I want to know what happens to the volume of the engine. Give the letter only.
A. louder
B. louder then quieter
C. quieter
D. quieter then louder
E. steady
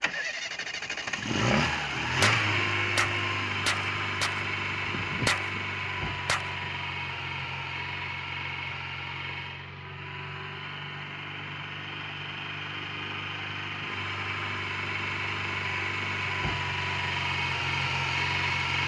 D.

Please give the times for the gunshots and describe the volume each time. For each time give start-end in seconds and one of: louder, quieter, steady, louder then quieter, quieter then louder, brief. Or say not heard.
2.0-6.7 quieter.